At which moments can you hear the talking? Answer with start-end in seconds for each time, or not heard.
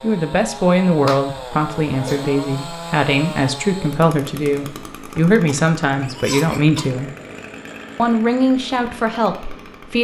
0.0-7.1, 8.0-9.9.